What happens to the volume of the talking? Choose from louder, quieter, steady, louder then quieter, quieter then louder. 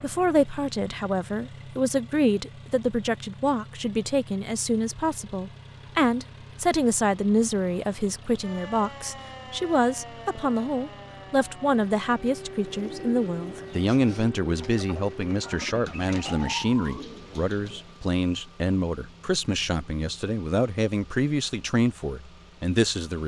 steady.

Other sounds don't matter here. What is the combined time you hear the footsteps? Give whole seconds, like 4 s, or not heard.
not heard.